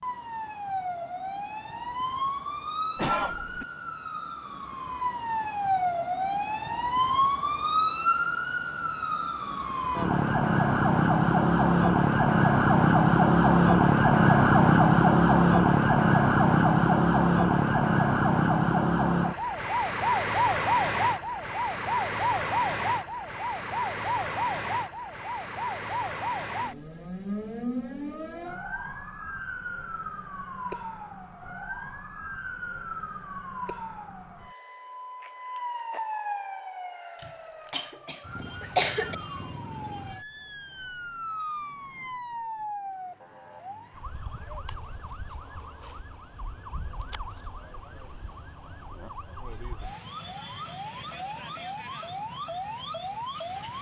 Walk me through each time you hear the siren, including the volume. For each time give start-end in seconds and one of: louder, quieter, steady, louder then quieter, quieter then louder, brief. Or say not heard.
0.0-53.7 louder then quieter.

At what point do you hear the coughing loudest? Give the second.
39 s.